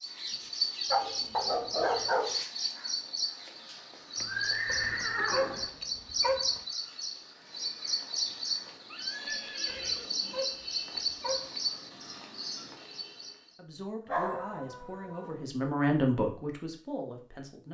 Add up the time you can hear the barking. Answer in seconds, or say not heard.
7 s.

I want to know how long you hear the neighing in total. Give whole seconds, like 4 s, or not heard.
3 s.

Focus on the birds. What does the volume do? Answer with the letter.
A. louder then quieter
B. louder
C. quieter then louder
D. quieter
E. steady
E.